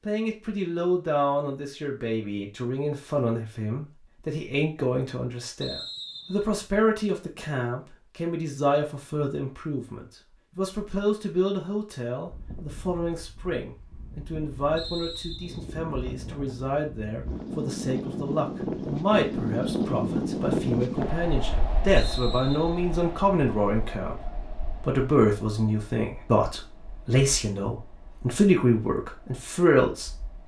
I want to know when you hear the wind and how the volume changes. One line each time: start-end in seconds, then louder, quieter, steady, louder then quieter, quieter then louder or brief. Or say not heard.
12.2-30.4 louder then quieter.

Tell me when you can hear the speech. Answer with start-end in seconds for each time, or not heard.
0.1-30.1.